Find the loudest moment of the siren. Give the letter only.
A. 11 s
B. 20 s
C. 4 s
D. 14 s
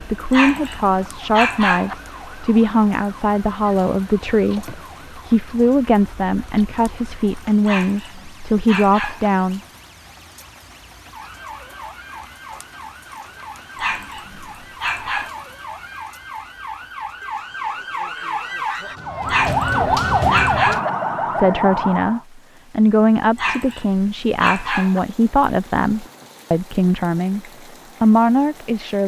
B.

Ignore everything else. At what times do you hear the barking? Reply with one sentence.
The barking can be heard from 0.3 to 1.9 s, from 7.7 to 9.3 s, from 13.8 to 15.3 s, from 19.2 to 20.9 s and from 23.4 to 25.0 s.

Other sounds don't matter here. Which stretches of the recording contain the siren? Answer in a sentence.
You can hear the siren from 0.0 to 22.2 s.